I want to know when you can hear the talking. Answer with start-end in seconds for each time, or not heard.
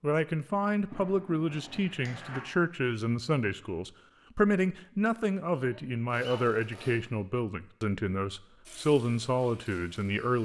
0.0-10.4.